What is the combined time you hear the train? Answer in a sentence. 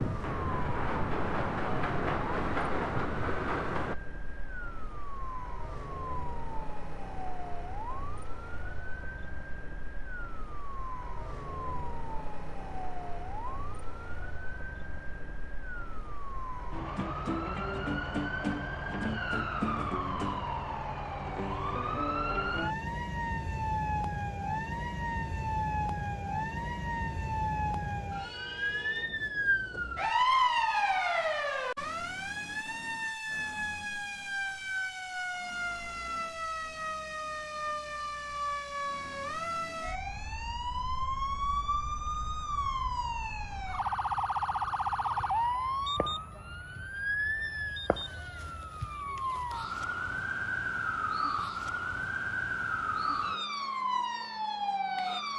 The train can be heard for 4 seconds in total.